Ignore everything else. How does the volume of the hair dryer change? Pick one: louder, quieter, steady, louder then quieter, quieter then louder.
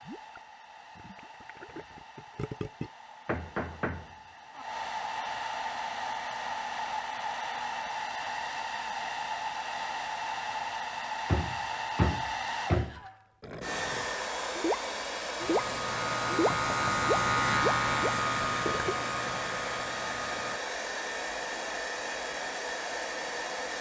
louder.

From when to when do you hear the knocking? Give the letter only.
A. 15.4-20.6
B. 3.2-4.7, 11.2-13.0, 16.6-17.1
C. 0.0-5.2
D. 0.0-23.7
B.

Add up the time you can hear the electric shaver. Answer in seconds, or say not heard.
5 s.